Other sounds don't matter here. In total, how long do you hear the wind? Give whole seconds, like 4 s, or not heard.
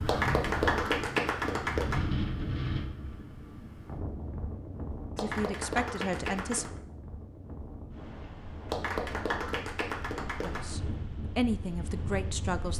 13 s.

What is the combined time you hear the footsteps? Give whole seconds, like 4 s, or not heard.
not heard.